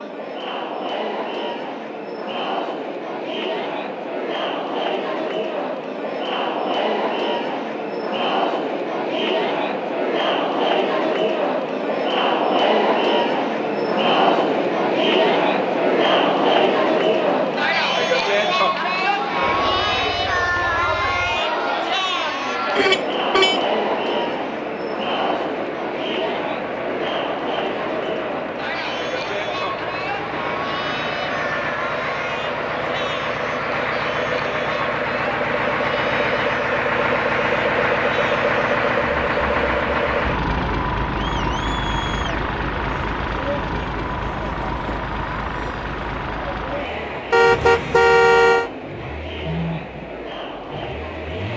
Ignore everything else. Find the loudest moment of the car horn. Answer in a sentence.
The volume of the car horn peaks at 48 seconds.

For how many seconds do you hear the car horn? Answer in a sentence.
You can hear the car horn for 2 seconds altogether.